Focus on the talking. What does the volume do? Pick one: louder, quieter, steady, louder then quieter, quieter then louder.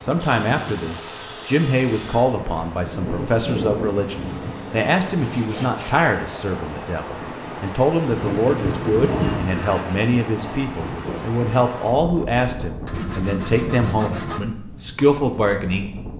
steady.